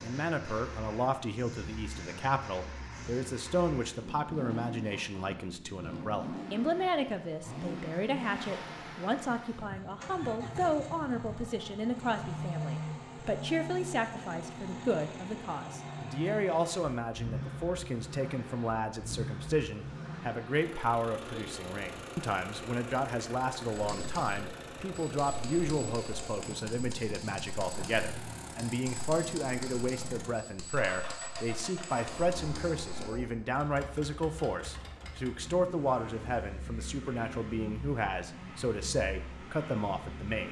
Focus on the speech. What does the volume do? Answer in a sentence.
The loudness of the speech stays about the same.